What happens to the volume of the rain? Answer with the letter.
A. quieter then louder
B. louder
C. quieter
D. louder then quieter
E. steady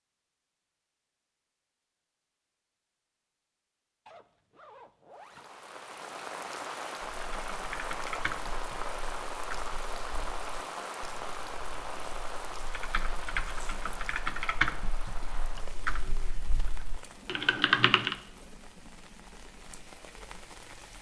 C.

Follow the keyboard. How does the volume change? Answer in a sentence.
The loudness of the keyboard goes down, then up.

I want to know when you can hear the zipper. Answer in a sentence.
You can hear the zipper from 4.0 to 5.5 s and from 13.4 to 13.8 s.